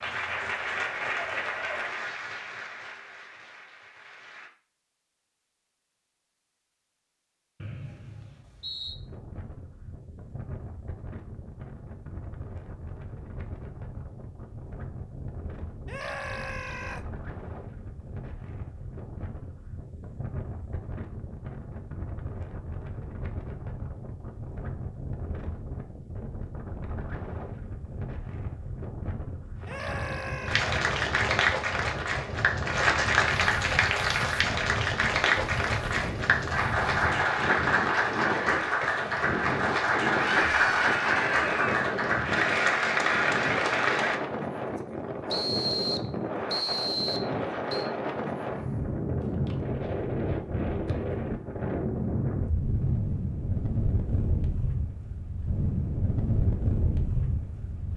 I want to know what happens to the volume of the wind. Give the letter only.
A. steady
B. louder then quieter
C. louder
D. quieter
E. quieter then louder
C.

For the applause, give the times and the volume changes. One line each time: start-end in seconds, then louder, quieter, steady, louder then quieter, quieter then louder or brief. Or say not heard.
0.0-4.5 quieter
30.4-44.2 steady.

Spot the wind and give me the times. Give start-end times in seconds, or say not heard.
8.8-57.9.